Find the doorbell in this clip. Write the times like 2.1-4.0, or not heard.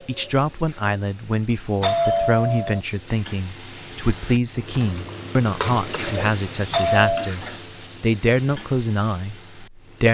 1.8-2.8, 6.7-7.3.